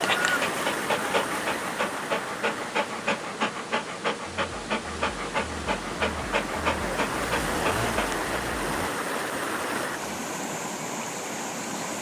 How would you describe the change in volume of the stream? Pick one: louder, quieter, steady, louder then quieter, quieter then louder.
quieter then louder.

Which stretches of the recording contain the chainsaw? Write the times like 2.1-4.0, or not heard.
4.3-8.9.